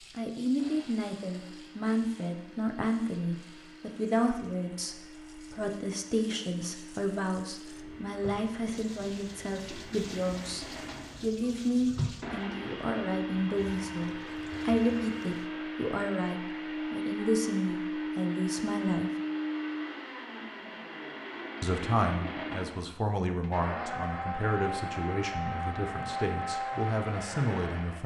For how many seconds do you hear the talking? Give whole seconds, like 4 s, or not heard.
25 s.